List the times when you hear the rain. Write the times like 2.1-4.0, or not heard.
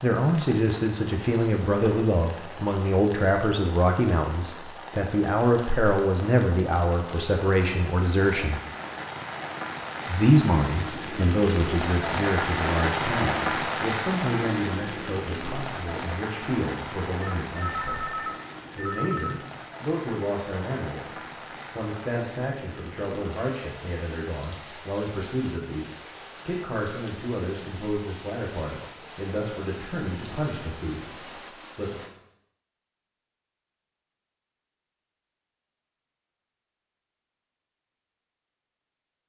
0.0-32.1.